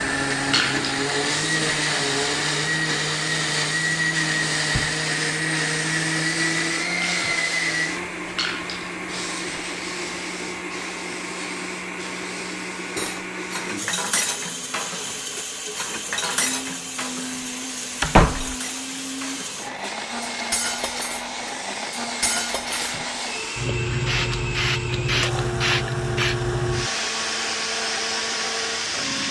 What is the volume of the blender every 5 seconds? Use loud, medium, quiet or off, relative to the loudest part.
loud, loud, medium, medium, medium, medium.